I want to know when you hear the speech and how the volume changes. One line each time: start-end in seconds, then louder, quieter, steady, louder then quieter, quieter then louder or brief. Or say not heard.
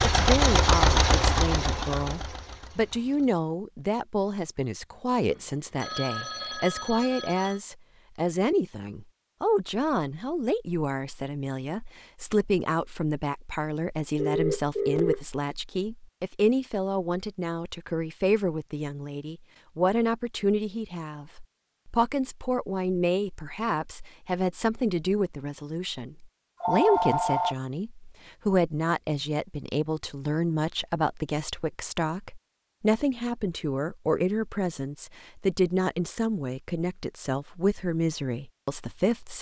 0.0-39.3 steady.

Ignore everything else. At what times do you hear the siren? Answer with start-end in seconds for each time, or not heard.
not heard.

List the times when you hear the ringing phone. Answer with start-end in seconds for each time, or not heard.
5.3-7.6, 14.2-15.2, 26.6-27.6.